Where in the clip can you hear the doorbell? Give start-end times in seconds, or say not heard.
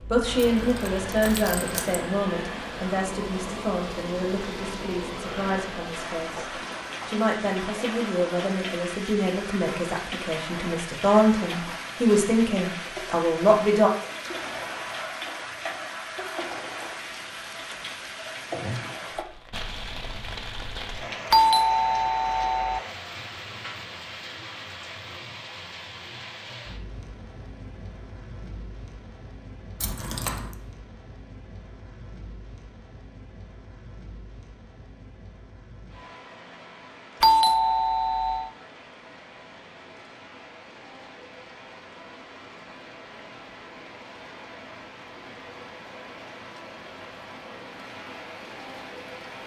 21.3-22.8, 37.2-38.5.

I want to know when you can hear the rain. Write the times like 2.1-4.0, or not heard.
0.0-49.4.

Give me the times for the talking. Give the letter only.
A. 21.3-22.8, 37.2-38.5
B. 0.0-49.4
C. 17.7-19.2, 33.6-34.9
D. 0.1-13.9
D.